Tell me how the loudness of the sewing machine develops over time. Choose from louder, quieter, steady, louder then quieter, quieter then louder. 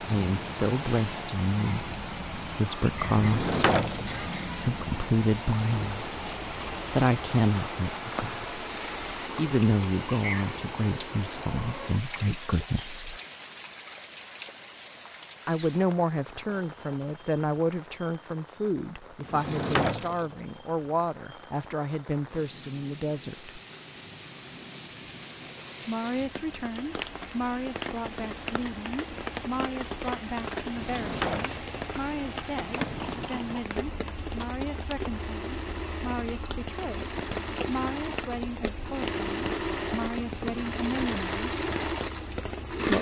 louder.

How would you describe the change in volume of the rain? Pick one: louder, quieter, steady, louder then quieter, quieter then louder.
quieter then louder.